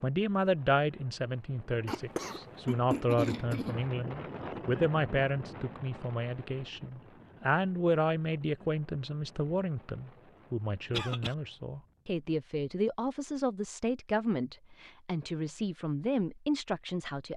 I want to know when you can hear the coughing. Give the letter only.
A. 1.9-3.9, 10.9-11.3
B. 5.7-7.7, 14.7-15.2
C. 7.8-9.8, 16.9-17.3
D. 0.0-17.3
A.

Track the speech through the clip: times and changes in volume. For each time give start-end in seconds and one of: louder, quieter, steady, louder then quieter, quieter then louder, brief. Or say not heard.
0.0-17.3 steady.